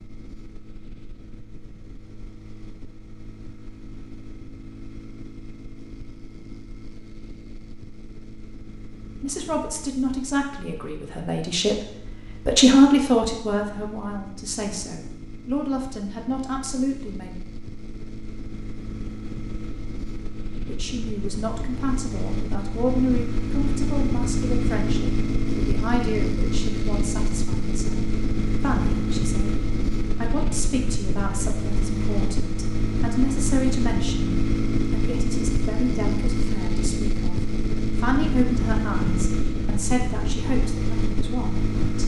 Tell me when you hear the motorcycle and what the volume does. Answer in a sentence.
You can hear the motorcycle from 0.0 to 42.0 s, getting louder.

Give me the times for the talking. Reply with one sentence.
The talking can be heard from 9.2 to 17.4 s and from 20.6 to 42.0 s.